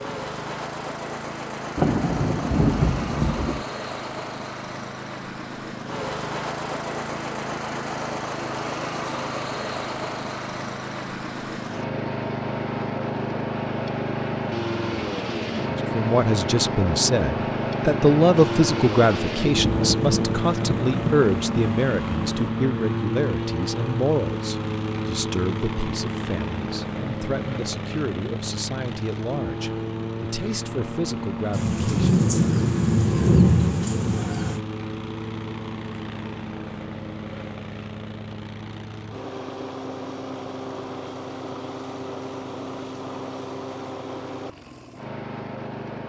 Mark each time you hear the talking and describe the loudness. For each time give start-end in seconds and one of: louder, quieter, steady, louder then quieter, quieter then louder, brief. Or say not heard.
15.8-32.1 quieter.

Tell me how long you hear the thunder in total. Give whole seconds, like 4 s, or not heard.
8 s.